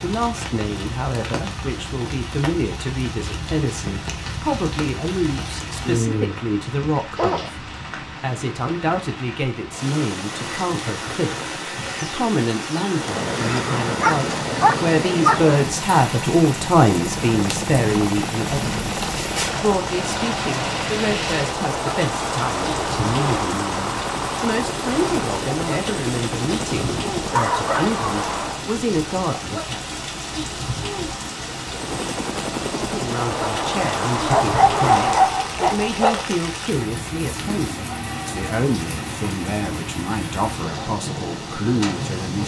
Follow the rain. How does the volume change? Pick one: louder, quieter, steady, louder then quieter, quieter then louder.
steady.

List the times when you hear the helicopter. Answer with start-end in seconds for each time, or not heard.
12.9-28.6, 31.6-35.4.